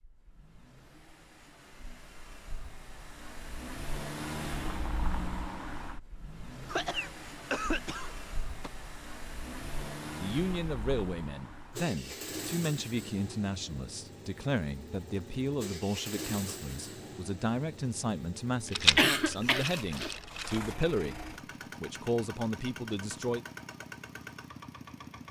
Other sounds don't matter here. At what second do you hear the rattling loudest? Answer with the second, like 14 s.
19 s.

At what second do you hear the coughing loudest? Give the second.
19 s.